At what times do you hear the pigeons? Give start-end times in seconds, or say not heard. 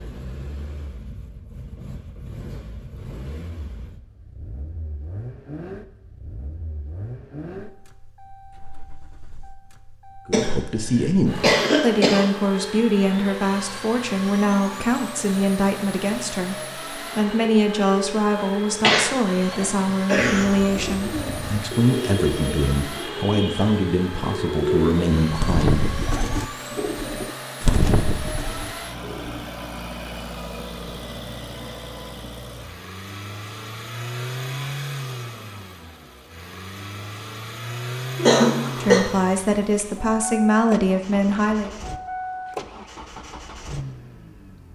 20.3-29.4.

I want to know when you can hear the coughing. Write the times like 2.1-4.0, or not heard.
10.3-12.2, 18.8-20.4, 38.1-39.0.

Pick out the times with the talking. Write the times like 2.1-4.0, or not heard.
10.2-26.1, 38.6-41.7.